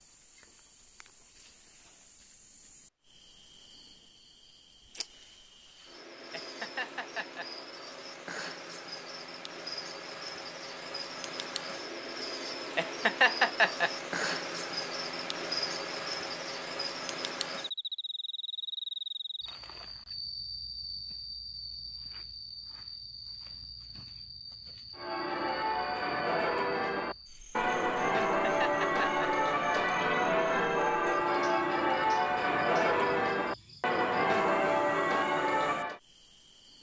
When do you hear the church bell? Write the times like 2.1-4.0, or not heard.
24.9-36.0.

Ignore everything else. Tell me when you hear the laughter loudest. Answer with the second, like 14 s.
13 s.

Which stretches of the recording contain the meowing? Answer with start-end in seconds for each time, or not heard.
not heard.